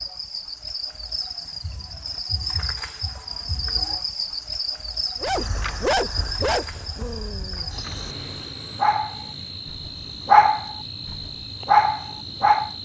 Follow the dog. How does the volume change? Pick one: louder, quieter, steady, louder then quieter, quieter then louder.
quieter then louder.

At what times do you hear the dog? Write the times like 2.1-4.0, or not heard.
5.2-12.7.